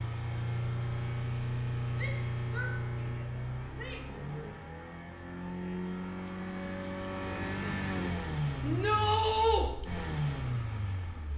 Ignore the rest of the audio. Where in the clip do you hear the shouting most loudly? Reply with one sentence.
The volume of the shouting peaks at 9 seconds.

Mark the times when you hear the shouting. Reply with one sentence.
You can hear the shouting from 1.9 to 4.1 s and from 8.6 to 9.7 s.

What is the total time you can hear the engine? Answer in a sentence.
The engine can be heard for 11 seconds in total.